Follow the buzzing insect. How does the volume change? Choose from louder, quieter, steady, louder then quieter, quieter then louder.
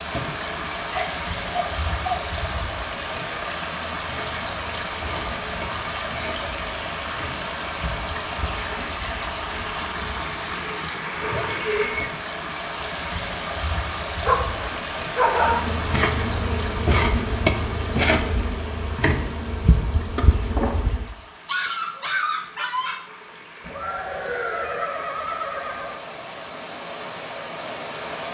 louder.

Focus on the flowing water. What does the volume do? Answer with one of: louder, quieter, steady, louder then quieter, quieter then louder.
quieter.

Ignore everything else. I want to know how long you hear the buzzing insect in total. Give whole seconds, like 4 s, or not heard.
21 s.